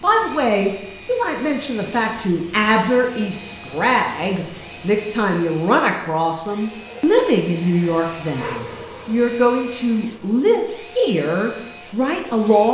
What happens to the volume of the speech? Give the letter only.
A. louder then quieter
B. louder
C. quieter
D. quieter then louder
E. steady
E.